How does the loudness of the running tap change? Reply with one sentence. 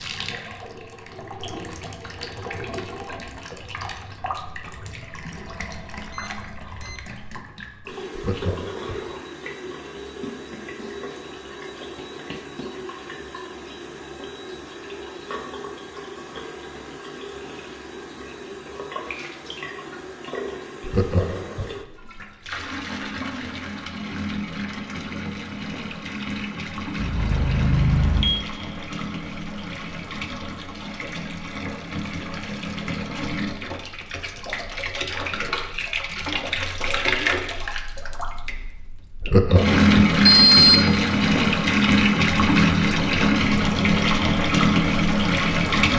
The volume of the running tap goes up.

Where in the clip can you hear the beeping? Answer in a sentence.
You can hear the beeping from 6.1 to 7.0 s, from 26.9 to 28.4 s and from 40.2 to 41.2 s.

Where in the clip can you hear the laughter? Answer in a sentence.
You can hear the laughter from 8.2 to 9.1 s, from 20.8 to 21.8 s and from 39.2 to 40.1 s.